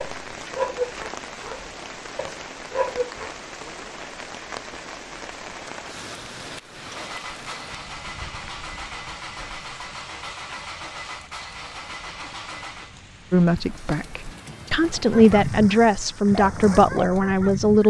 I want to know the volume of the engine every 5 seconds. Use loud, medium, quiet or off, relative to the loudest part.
off, loud, loud, off.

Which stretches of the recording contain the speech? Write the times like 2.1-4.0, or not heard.
13.3-17.8.